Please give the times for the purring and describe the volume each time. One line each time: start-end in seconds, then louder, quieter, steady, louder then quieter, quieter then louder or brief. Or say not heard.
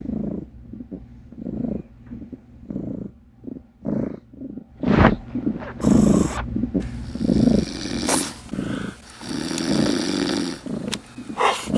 0.0-11.7 louder then quieter.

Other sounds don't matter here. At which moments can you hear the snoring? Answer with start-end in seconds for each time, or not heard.
5.8-11.7.